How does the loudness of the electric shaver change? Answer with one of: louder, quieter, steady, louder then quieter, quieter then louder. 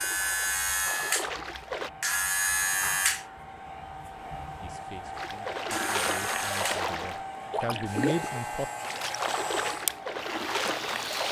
quieter.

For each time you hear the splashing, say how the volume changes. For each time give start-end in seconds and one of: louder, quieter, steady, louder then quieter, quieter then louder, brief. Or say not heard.
0.0-1.9 brief
5.2-11.2 steady.